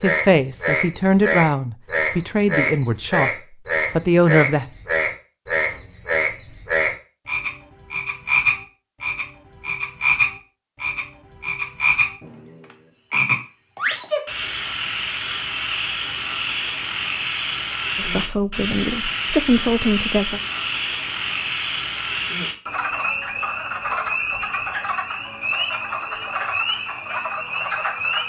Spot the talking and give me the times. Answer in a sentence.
The talking can be heard from 0.0 to 3.3 s, from 4.0 to 4.7 s and from 17.9 to 20.4 s.